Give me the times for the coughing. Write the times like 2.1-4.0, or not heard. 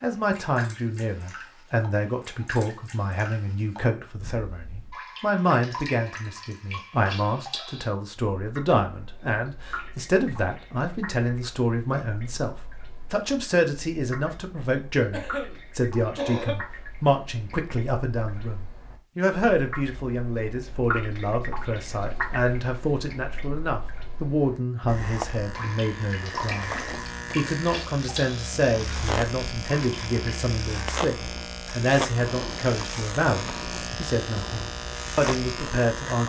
15.1-16.6.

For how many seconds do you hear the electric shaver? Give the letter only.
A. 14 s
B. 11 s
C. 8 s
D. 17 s
B.